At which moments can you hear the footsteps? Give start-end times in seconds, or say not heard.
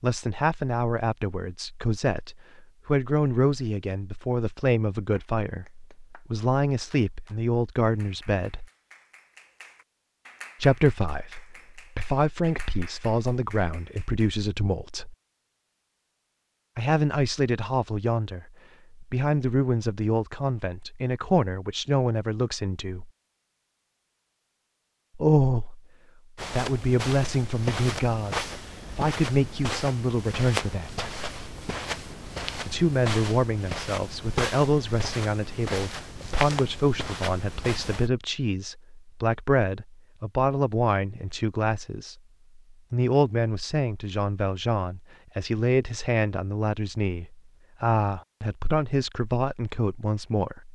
26.4-38.1.